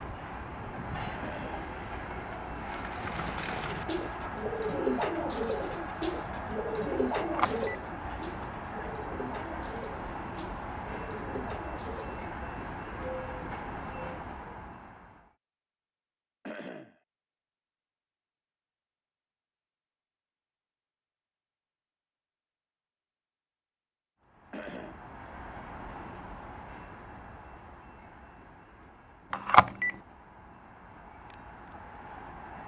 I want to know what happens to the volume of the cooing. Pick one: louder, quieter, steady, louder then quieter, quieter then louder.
quieter.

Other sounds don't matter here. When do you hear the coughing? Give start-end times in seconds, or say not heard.
1.2-1.8, 16.4-16.9, 24.5-25.1.